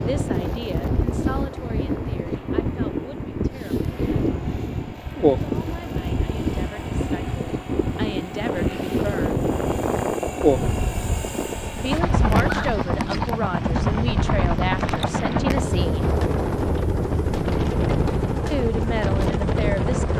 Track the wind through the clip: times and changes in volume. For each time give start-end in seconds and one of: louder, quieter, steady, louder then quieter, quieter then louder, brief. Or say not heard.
0.0-20.1 steady.